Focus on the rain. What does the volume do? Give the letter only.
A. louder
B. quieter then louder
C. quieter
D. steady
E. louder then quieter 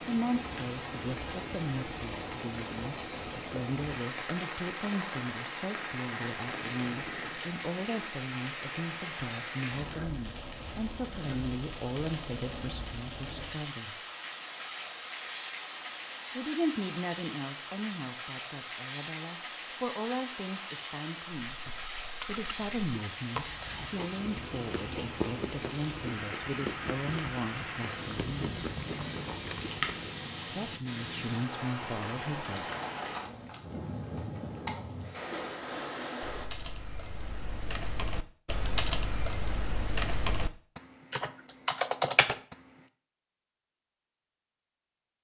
D.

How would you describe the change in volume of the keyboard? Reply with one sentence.
The loudness of the keyboard goes up.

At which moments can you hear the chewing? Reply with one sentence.
You can hear the chewing from 21.5 to 30.2 s.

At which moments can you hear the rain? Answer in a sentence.
You can hear the rain from 0.0 to 36.5 s.